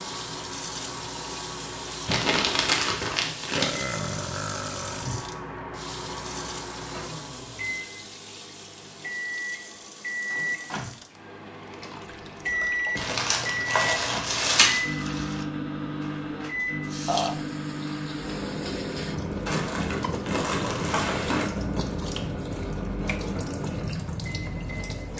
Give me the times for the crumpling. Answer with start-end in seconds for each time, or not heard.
2.0-3.8, 12.9-14.8, 19.4-21.4.